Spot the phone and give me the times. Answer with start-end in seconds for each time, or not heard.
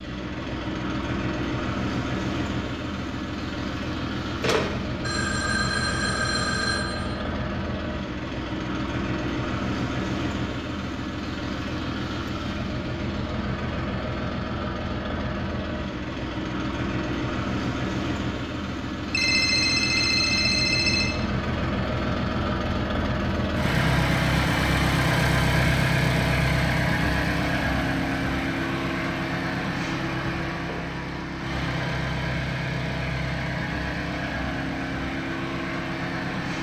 4.4-7.2, 19.1-21.1.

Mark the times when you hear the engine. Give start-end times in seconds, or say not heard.
0.0-36.5.